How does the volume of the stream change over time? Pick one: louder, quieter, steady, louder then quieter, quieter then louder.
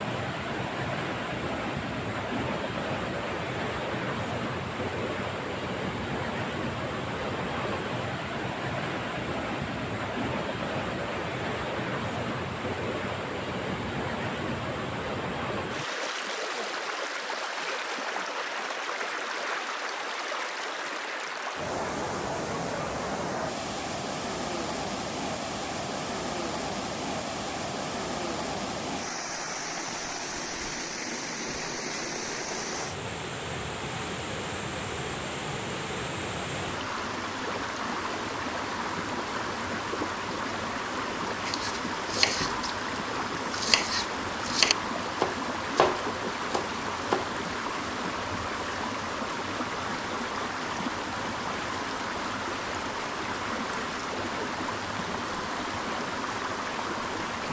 steady.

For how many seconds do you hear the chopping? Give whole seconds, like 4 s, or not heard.
6 s.